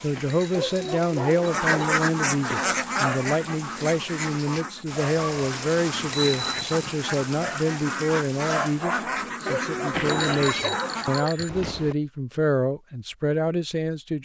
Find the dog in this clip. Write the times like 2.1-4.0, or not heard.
0.5-2.0, 9.4-11.4.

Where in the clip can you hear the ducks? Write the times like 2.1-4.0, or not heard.
1.4-11.2.